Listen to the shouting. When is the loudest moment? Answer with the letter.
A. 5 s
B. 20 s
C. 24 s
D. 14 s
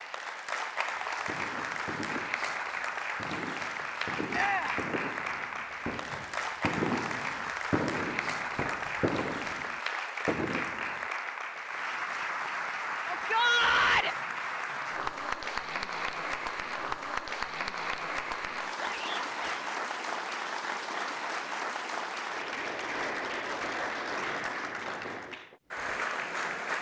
D.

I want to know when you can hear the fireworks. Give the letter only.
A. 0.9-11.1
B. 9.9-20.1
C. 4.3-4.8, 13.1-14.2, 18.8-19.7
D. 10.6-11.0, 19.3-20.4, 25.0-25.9
A.